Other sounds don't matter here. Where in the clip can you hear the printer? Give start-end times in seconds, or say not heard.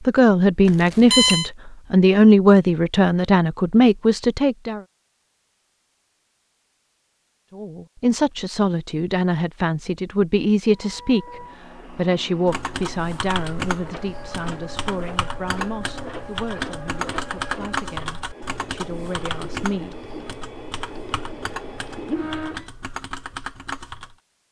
10.7-22.7.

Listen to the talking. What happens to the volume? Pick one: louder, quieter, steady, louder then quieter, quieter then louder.
quieter.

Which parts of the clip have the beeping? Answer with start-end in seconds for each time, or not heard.
0.7-1.5.